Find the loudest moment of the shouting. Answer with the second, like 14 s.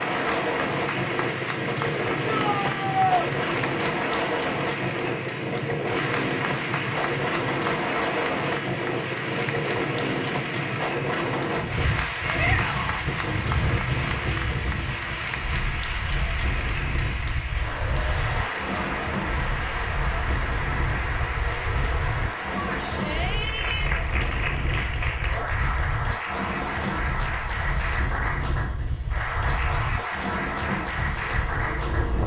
3 s.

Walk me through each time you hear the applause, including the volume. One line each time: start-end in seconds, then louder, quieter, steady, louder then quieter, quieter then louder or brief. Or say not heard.
0.0-32.2 steady.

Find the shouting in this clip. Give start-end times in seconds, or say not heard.
2.2-3.3, 12.2-13.1, 22.6-23.9.